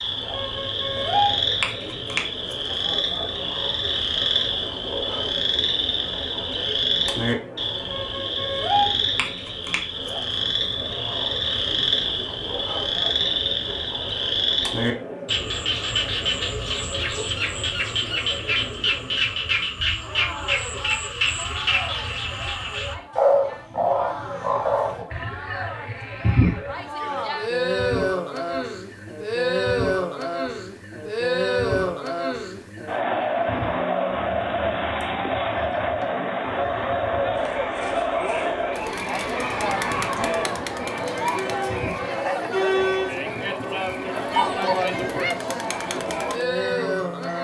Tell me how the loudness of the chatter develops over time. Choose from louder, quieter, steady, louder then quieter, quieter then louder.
louder.